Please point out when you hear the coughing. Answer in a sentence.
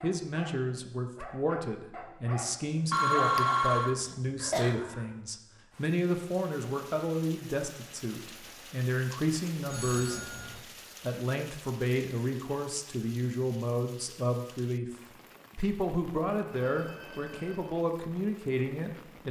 The coughing can be heard from 4.0 to 4.8 s.